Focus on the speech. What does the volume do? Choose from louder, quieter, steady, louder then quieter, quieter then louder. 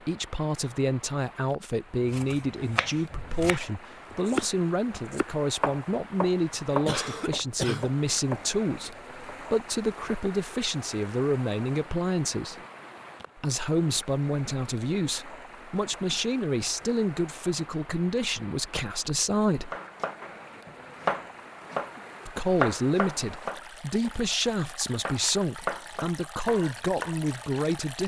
steady.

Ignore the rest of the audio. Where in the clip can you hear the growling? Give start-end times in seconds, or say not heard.
not heard.